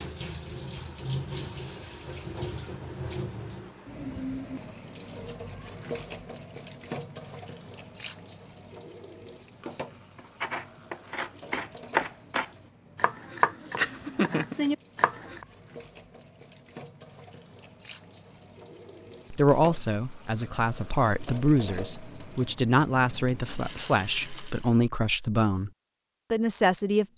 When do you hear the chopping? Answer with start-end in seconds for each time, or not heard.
10.2-15.4.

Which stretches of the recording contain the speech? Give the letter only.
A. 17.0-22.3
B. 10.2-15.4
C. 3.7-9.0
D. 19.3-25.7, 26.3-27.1
D.